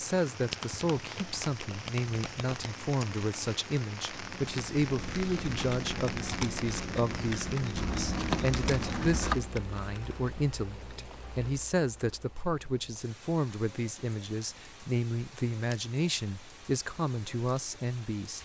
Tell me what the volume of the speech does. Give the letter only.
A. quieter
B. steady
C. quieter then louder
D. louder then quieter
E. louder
B.